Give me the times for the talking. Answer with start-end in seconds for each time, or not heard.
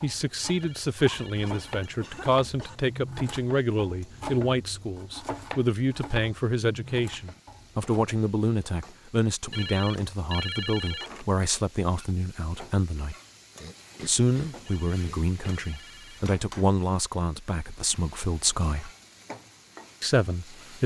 0.0-13.2, 14.1-18.9, 20.0-20.8.